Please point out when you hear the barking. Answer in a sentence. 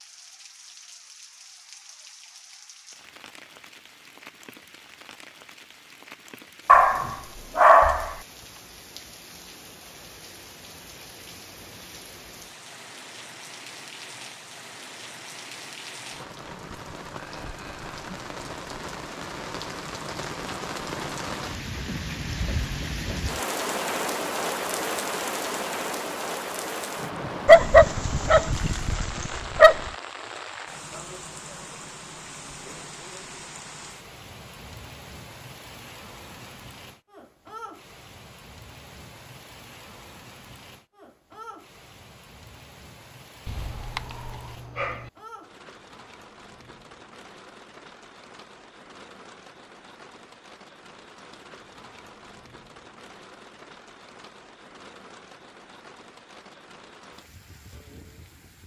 You can hear the barking from 6.7 to 8.2 s, from 27.4 to 29.9 s and from 43.5 to 45.1 s.